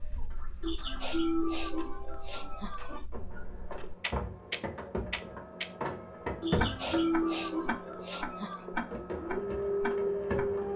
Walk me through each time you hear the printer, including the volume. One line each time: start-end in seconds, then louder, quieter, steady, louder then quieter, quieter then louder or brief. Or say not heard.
0.0-10.7 louder.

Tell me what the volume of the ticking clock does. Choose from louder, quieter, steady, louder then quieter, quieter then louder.
louder.